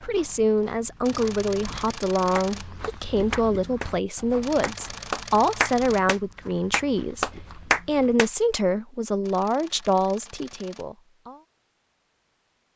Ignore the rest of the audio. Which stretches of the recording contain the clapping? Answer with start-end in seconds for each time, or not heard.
2.4-3.9, 4.6-8.3.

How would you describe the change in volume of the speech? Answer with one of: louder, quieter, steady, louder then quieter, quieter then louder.
steady.